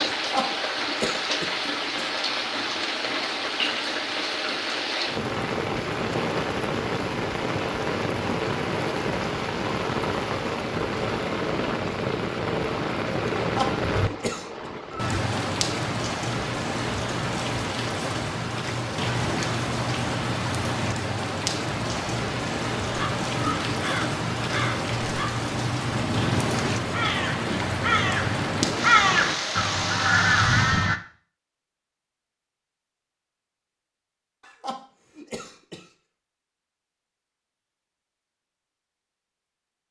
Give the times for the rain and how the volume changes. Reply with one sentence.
The rain can be heard from 0.0 to 30.9 s, at a steady volume.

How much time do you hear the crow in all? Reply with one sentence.
The crow can be heard for 8 seconds in total.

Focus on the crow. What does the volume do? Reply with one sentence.
The loudness of the crow goes up.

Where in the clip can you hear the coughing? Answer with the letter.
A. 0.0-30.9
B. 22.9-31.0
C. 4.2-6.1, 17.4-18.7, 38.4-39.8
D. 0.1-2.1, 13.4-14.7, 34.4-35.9
D.